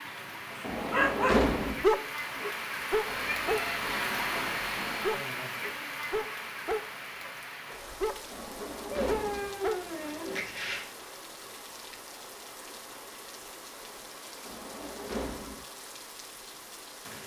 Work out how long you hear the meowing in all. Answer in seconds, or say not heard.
4 s.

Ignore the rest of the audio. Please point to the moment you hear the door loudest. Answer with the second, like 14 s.
1 s.